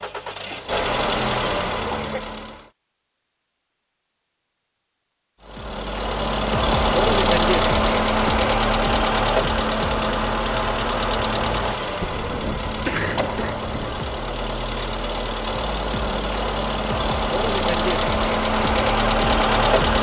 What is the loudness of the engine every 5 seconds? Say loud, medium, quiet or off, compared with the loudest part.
medium, loud, medium, loud.